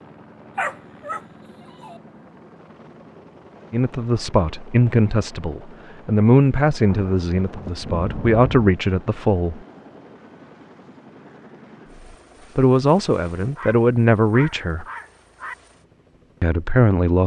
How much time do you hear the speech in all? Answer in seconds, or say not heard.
9 s.